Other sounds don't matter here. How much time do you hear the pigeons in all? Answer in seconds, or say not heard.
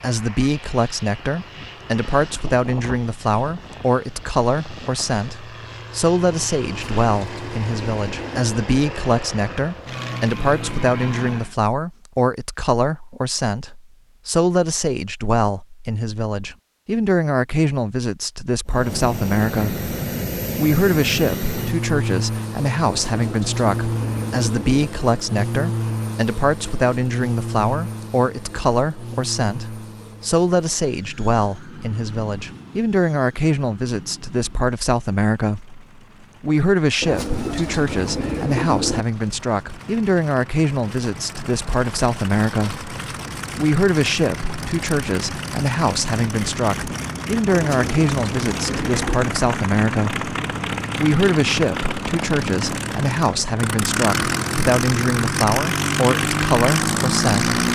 8 s.